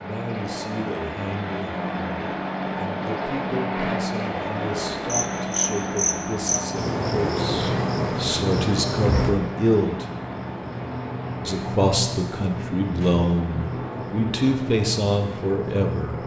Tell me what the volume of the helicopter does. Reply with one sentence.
The volume of the helicopter goes down.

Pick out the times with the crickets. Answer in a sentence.
The crickets can be heard from 5.0 to 16.2 s.